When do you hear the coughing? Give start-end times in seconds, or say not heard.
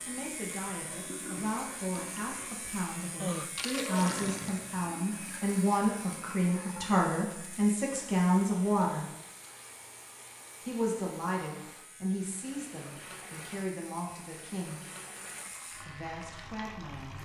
3.2-4.1.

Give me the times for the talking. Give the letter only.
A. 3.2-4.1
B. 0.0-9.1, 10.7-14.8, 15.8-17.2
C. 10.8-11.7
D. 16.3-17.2
B.